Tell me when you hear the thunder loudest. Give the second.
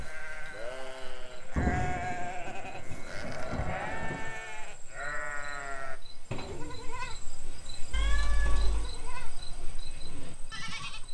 2 s.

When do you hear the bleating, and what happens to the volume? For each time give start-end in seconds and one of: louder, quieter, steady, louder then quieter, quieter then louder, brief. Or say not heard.
0.0-11.0 quieter.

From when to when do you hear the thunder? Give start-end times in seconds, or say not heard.
1.6-4.4.